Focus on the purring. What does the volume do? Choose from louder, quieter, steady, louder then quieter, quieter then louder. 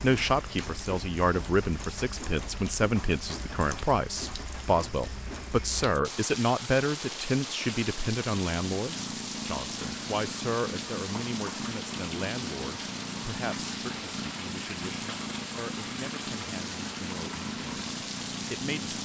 steady.